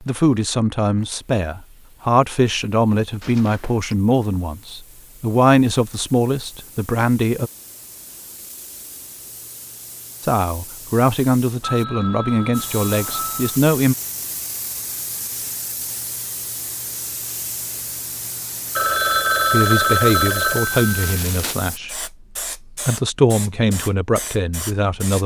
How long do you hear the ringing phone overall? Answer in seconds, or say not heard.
5 s.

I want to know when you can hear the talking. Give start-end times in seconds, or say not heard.
0.0-7.5, 10.2-13.9, 19.5-22.1, 22.7-25.2.